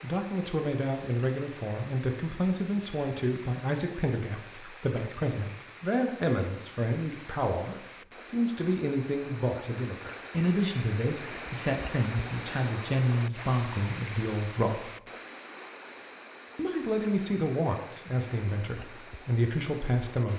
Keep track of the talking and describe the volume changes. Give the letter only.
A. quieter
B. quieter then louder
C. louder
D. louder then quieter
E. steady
E.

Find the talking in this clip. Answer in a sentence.
You can hear the talking from 0.0 to 14.9 s and from 16.6 to 20.3 s.